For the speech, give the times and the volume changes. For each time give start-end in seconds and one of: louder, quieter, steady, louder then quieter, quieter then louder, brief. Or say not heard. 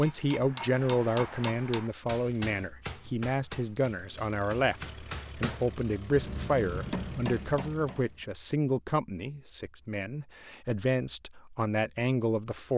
0.0-12.7 steady.